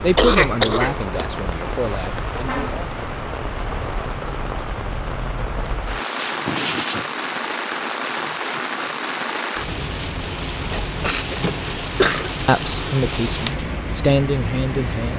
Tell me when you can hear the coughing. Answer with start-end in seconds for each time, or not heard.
0.1-2.0, 5.9-7.0, 11.0-12.3.